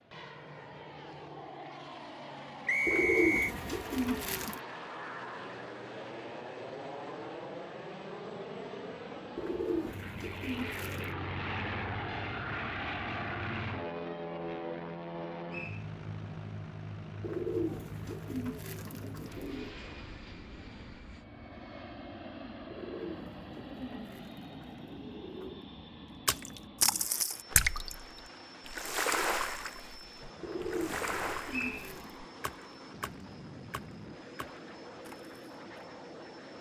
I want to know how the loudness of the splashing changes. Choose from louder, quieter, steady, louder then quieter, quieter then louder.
quieter.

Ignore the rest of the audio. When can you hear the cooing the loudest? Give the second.
3 s.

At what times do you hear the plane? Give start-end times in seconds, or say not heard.
0.0-36.5.